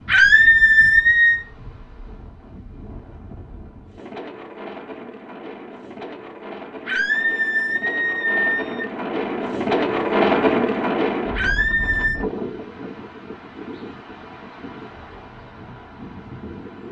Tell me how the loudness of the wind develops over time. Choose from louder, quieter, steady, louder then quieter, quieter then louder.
louder then quieter.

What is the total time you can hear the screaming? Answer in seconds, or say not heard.
4 s.